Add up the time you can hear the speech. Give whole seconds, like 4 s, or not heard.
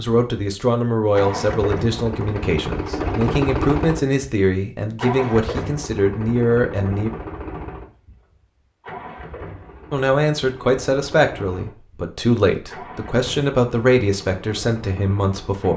13 s.